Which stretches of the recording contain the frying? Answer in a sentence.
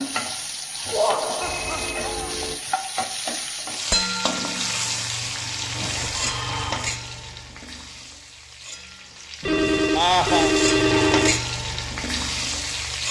You can hear the frying from 0.0 to 13.0 s.